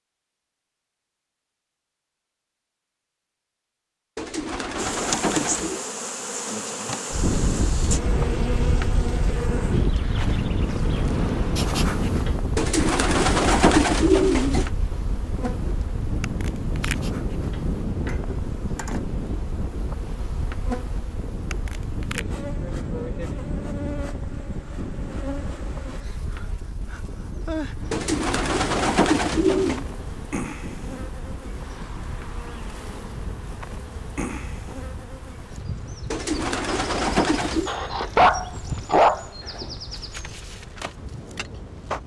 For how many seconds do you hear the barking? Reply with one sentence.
You can hear the barking for 2 seconds altogether.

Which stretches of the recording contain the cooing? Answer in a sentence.
You can hear the cooing from 4.2 to 5.8 s, from 12.6 to 14.7 s, from 27.9 to 29.9 s and from 36.1 to 37.7 s.